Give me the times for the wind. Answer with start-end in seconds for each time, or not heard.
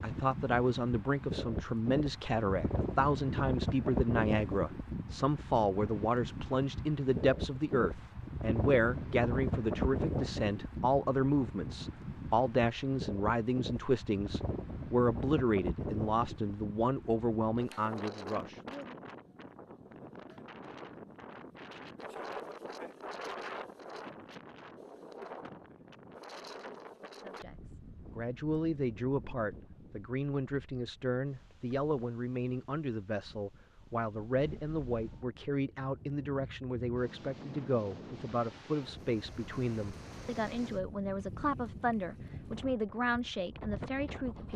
0.0-44.5.